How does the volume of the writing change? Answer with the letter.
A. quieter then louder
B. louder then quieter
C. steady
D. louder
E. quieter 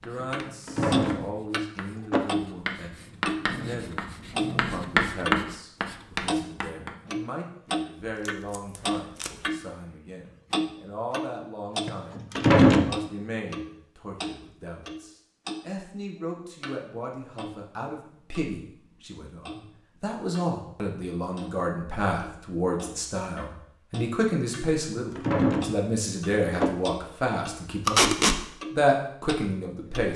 D.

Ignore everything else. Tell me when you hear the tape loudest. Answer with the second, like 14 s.
28 s.